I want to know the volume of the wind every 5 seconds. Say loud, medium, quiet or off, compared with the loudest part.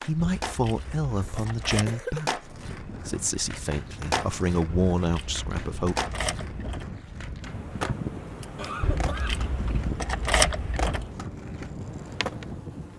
medium, loud, loud.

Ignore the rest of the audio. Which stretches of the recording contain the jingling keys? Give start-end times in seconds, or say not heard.
0.1-1.9, 4.7-6.8, 8.8-11.1.